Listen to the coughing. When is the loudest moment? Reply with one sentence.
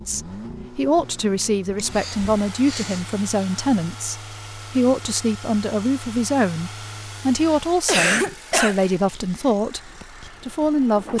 The loudest moment of the coughing is at 8 seconds.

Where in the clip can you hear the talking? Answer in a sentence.
You can hear the talking from 0.1 to 9.8 s and from 10.4 to 11.1 s.